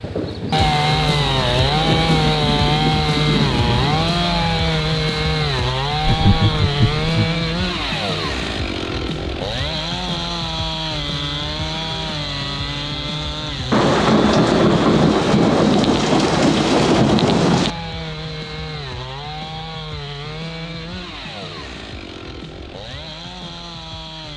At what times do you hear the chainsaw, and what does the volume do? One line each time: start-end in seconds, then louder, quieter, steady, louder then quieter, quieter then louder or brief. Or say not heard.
0.0-24.3 quieter.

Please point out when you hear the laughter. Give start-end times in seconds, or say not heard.
6.0-7.4.